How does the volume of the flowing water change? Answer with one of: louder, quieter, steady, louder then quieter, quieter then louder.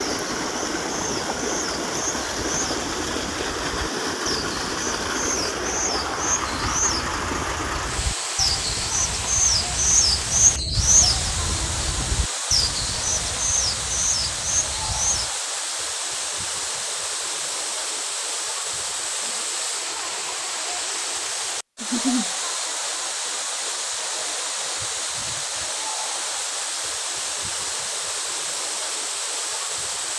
steady.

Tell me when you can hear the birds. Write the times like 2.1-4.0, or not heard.
0.0-15.3.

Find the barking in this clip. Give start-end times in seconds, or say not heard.
not heard.